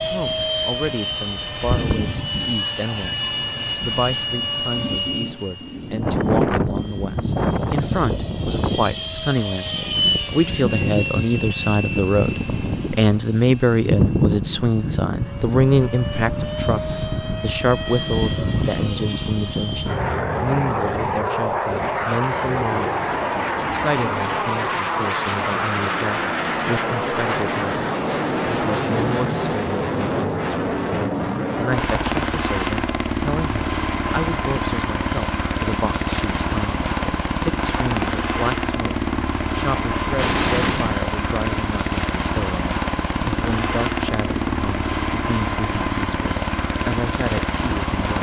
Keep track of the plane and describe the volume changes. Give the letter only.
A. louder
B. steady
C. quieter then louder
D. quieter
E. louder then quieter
B.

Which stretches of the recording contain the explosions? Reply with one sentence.
The explosions can be heard from 40.1 to 41.0 s.